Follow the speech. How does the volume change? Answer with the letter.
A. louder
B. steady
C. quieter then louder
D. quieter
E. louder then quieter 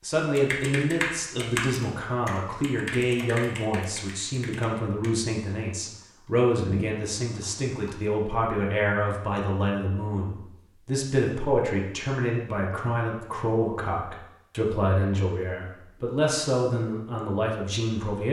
B.